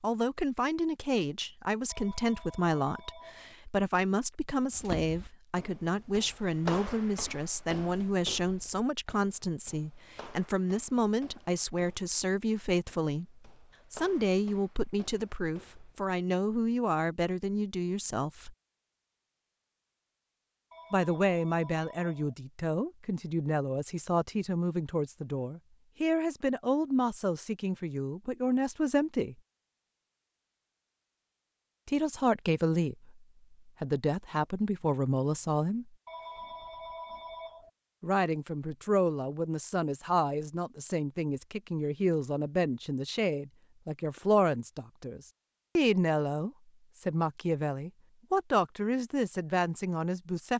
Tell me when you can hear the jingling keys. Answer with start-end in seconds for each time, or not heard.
not heard.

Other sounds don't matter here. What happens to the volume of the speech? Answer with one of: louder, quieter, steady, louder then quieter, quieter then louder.
steady.